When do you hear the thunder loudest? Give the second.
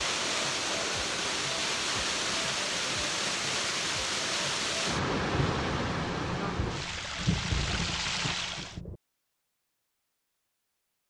7 s.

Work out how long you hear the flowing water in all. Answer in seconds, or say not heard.
9 s.